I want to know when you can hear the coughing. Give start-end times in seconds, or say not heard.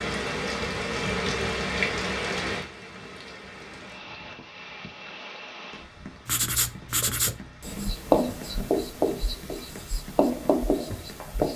not heard.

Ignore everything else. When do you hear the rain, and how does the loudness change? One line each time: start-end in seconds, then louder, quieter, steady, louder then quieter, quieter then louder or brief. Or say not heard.
0.0-11.5 quieter.